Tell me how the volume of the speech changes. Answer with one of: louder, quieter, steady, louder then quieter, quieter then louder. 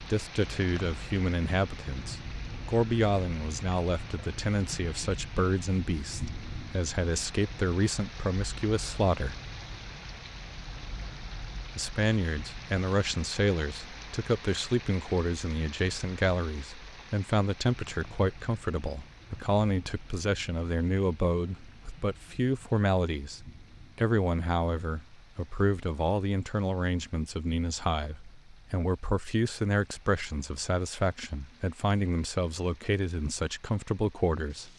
steady.